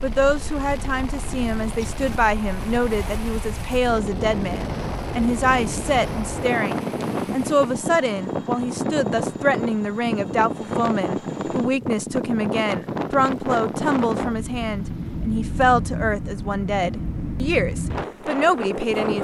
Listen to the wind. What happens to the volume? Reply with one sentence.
The volume of the wind goes up.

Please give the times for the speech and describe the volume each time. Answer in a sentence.
The speech can be heard from 0.0 to 19.2 s, at a steady volume.